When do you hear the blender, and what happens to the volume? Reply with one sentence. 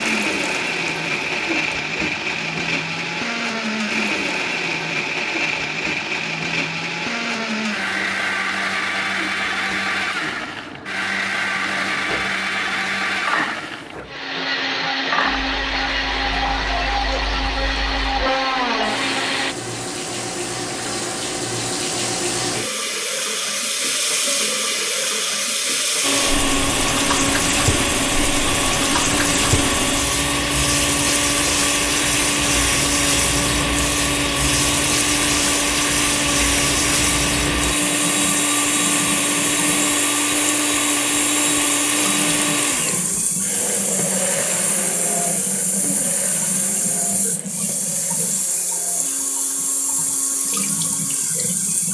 You can hear the blender from 0.0 to 19.6 s, at a steady volume; and from 26.0 to 51.8 s, getting quieter.